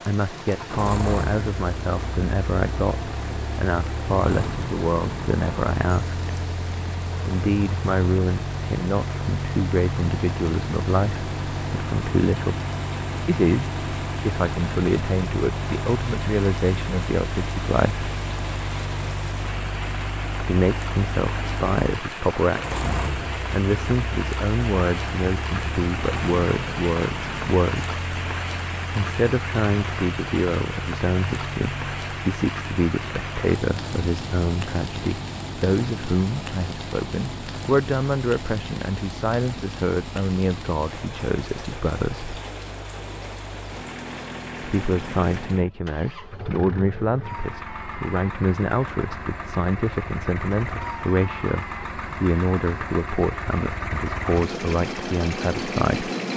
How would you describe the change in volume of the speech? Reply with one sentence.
The volume of the speech stays about the same.